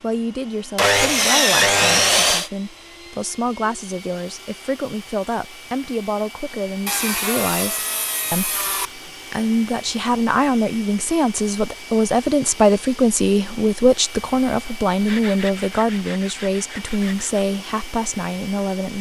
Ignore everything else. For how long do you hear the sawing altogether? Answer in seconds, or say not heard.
6 s.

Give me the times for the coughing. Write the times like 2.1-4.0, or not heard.
not heard.